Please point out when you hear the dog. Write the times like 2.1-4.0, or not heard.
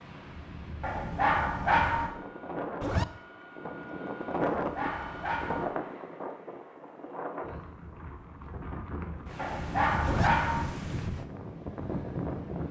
0.8-2.1, 4.5-5.7, 9.3-10.7.